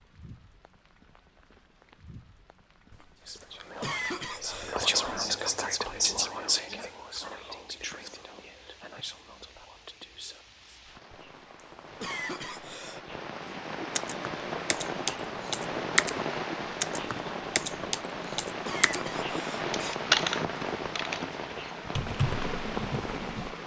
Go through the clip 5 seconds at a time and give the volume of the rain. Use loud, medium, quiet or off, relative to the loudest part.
quiet, quiet, medium, loud, loud.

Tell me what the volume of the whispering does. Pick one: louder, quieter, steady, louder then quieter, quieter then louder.
quieter.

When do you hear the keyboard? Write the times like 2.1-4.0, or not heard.
13.4-23.6.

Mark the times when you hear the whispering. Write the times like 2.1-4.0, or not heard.
3.2-10.8.